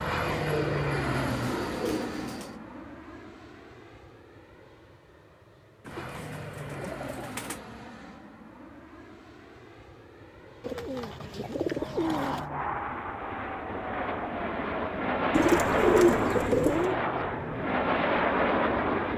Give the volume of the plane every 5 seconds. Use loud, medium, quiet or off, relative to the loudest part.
medium, quiet, medium, loud.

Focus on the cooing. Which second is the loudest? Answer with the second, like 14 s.
16 s.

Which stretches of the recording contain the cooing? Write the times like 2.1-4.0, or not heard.
0.2-2.5, 5.8-7.6, 10.6-12.4, 15.3-16.9.